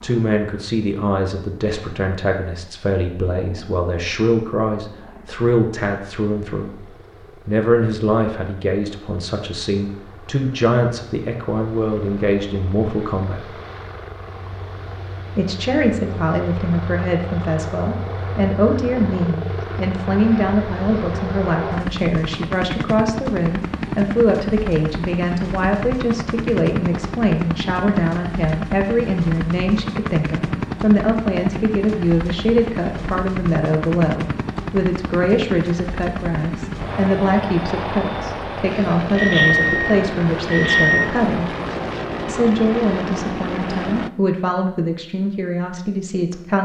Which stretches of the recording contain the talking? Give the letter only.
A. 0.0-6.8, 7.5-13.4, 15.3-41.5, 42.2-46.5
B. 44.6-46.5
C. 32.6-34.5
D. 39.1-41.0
A.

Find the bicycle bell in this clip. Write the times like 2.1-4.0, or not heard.
39.1-41.0.